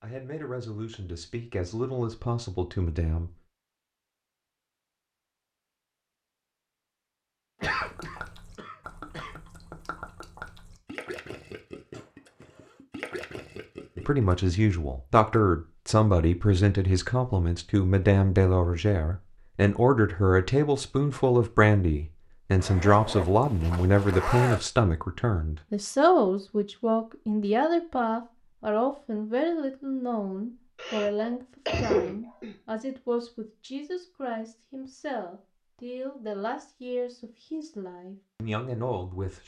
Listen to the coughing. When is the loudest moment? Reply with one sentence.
The volume of the coughing peaks at 32 seconds.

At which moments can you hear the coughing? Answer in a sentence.
You can hear the coughing from 7.6 to 9.3 s and from 30.8 to 32.5 s.